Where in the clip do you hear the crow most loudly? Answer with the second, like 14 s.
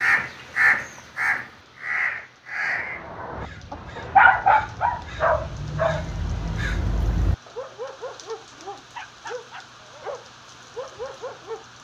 1 s.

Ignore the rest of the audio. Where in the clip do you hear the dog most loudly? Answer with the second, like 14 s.
4 s.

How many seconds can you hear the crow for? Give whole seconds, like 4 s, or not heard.
7 s.